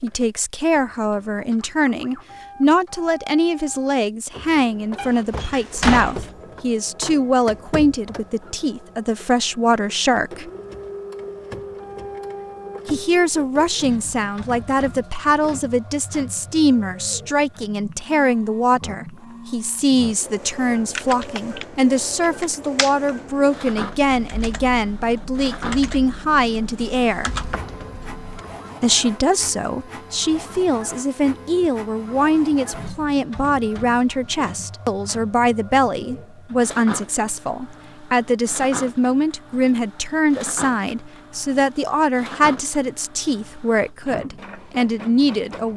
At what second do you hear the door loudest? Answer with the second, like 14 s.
6 s.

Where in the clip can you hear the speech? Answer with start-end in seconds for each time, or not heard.
0.0-10.5, 12.8-27.4, 28.8-45.7.